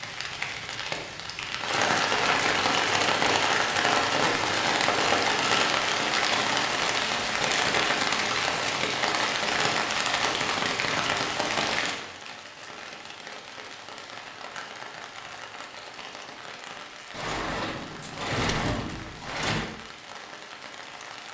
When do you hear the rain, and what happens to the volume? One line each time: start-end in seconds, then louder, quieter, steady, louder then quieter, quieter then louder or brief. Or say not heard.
0.0-21.2 quieter.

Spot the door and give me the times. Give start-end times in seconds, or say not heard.
17.1-19.7.